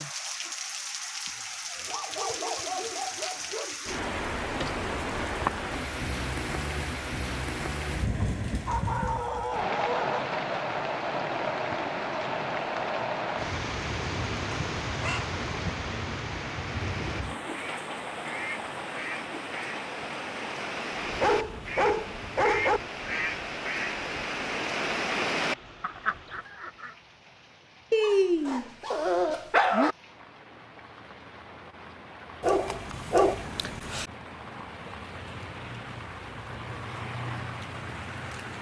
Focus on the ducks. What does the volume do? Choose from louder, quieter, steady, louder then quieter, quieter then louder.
louder.